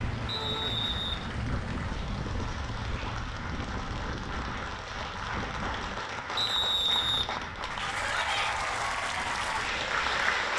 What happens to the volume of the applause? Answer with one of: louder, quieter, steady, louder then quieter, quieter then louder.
louder.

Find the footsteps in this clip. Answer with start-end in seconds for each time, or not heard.
not heard.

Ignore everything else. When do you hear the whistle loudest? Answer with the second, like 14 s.
7 s.